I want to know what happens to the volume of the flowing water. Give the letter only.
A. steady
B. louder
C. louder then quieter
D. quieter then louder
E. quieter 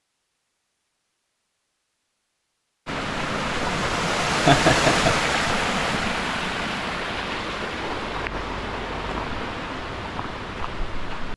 E.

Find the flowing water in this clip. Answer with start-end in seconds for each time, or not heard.
2.9-11.3.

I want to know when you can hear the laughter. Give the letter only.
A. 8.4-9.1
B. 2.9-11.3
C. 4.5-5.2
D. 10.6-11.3
C.